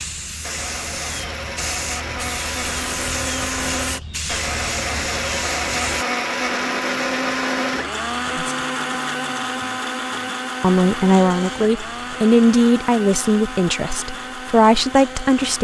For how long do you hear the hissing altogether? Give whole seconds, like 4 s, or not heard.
6 s.